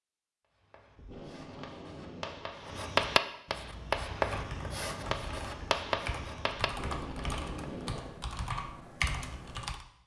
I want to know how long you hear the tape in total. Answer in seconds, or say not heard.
3 s.